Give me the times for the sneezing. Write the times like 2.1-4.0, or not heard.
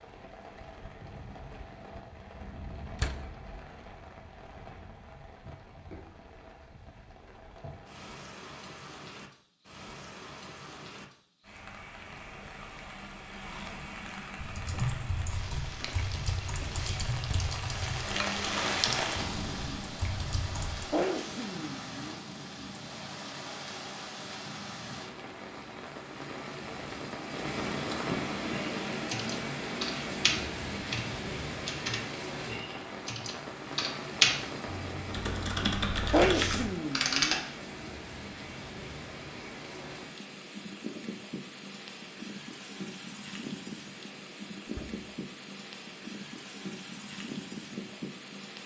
20.9-22.2, 36.1-37.4.